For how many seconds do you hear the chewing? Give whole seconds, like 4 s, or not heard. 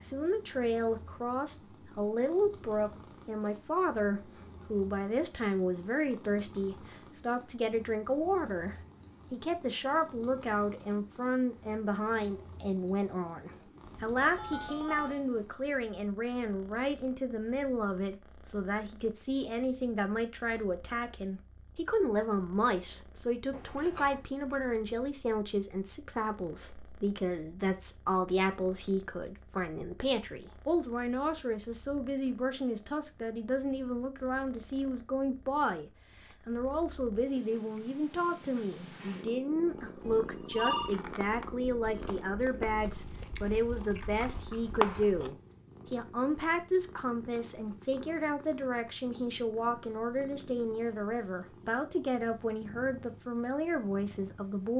6 s.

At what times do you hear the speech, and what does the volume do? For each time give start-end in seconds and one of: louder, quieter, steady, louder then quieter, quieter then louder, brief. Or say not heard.
0.0-54.7 steady.